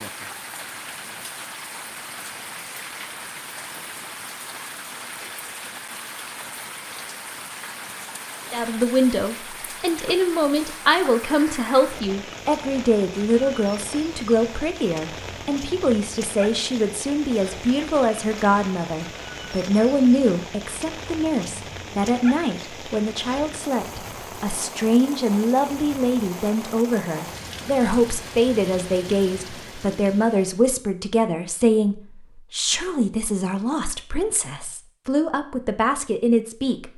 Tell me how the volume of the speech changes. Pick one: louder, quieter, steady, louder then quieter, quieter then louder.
steady.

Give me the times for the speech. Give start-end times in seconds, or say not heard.
8.5-36.9.